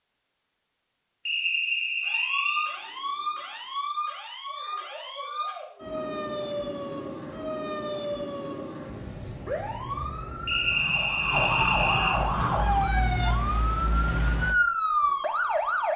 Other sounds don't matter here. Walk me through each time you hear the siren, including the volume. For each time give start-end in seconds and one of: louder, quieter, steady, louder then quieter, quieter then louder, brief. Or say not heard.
2.0-15.9 louder.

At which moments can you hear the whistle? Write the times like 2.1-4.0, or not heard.
1.2-2.8, 10.4-12.2.